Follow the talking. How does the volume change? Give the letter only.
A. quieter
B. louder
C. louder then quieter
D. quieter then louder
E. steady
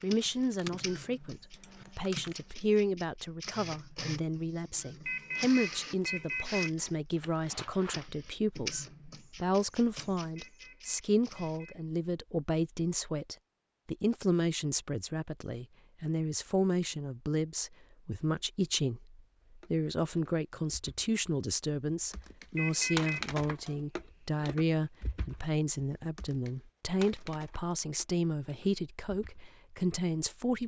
E.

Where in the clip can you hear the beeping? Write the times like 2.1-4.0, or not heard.
5.0-6.7, 10.3-11.8, 22.6-23.2.